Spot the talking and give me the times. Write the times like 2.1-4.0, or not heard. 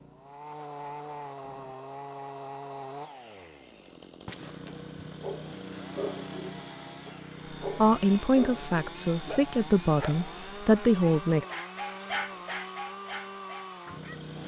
7.7-11.4.